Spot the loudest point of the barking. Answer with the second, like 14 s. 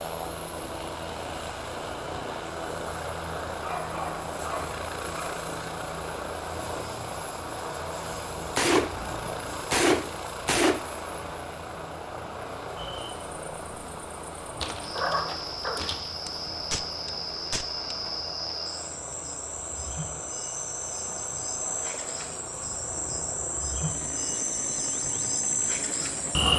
15 s.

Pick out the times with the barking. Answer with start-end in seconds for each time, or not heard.
3.6-5.3, 14.6-16.1.